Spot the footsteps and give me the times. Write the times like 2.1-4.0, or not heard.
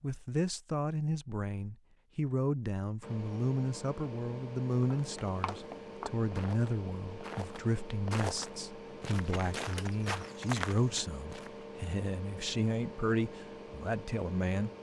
4.8-11.7.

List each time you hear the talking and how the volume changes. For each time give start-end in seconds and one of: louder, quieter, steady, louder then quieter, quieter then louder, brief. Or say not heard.
0.0-14.7 steady.